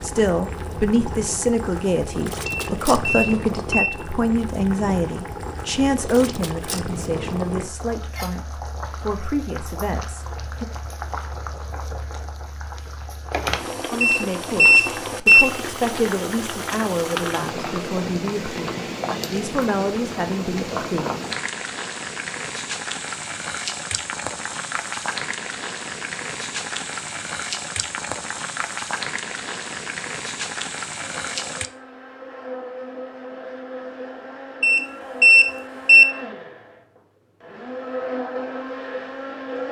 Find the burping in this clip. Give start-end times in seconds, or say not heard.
not heard.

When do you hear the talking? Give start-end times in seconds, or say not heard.
0.0-10.7, 13.9-21.1.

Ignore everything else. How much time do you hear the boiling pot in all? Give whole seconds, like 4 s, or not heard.
32 s.